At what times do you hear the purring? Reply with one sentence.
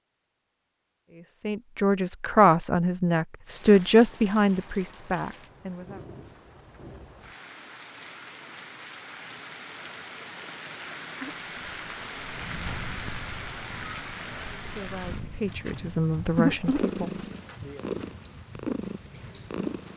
You can hear the purring from 11.0 to 19.9 s.